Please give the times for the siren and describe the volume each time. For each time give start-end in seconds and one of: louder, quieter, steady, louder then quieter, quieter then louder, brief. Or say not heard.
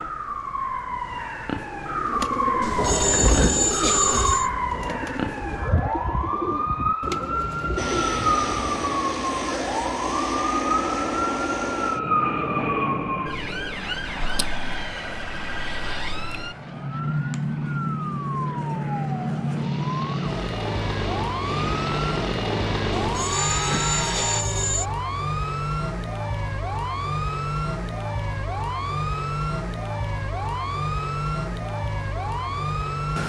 0.0-33.2 steady.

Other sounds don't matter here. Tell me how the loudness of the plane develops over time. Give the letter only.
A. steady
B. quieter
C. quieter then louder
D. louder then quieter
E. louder
C.